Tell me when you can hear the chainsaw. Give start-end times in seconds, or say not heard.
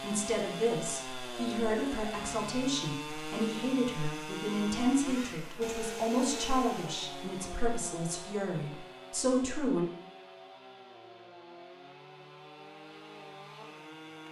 0.0-14.2.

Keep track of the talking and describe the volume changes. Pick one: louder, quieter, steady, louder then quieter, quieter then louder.
steady.